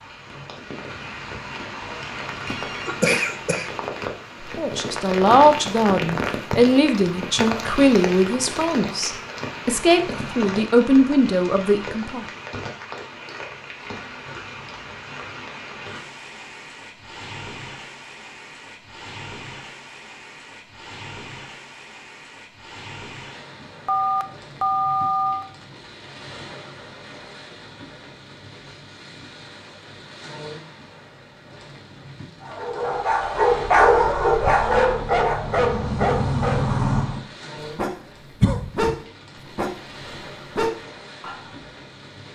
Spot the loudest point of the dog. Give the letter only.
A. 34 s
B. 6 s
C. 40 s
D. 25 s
A.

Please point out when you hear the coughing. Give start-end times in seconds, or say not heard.
2.9-3.7, 38.4-39.0.